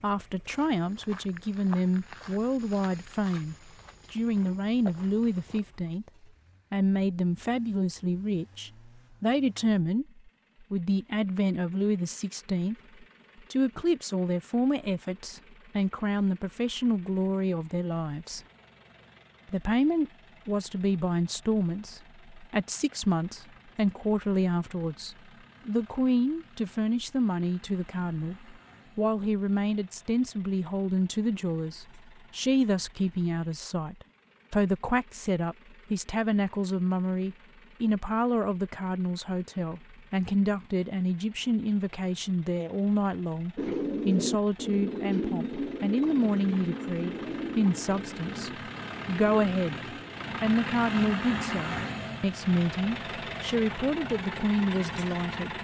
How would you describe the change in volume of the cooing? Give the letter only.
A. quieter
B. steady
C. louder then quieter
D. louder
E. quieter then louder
A.